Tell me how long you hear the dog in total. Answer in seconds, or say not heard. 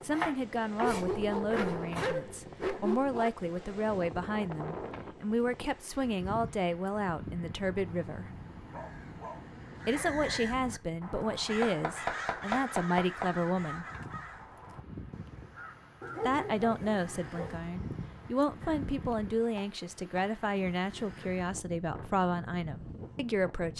6 s.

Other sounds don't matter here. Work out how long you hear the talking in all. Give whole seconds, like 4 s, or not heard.
20 s.